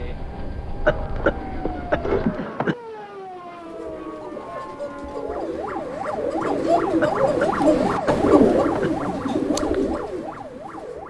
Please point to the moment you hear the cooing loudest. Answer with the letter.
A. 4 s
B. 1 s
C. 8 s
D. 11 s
C.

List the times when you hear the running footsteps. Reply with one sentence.
The running footsteps can't be heard in this clip.